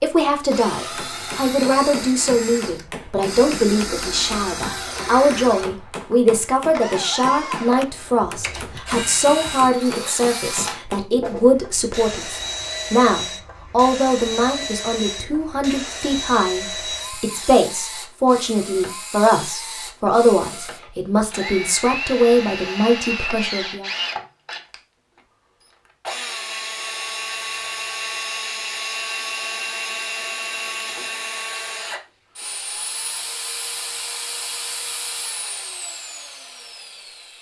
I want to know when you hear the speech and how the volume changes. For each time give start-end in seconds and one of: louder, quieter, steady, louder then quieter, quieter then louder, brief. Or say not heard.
0.0-23.9 steady.